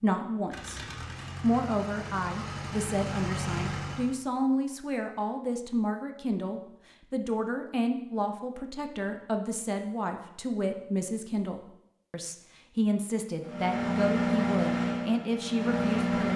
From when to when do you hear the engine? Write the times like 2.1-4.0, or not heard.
0.3-4.2, 13.4-16.3.